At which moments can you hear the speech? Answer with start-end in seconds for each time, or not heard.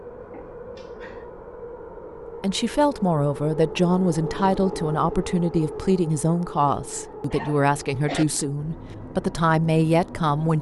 2.4-10.5.